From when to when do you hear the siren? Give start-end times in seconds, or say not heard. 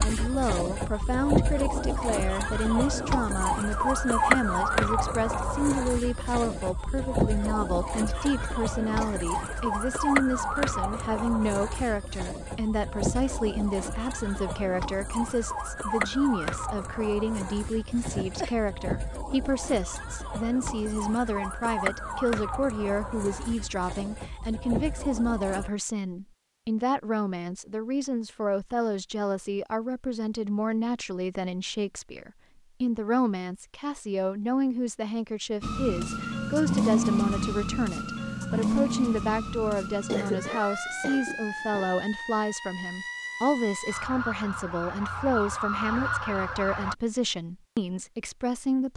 0.0-25.7, 35.6-47.0.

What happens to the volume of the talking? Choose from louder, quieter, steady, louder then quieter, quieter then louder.
steady.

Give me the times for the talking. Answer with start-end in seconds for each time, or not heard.
0.0-48.9.